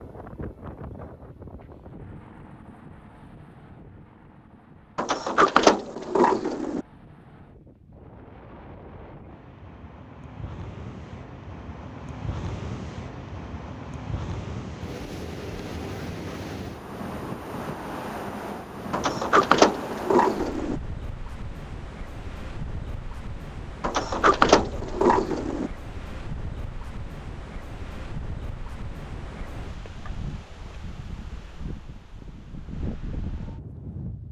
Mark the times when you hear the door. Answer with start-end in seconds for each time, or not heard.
5.0-6.8, 18.9-20.8, 23.8-25.7.